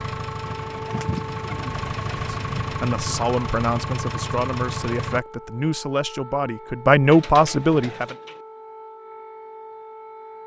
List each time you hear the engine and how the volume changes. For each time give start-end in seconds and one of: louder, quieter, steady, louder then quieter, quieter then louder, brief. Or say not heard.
0.0-5.2 louder.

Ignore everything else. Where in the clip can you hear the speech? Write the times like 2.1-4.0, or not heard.
2.3-8.2.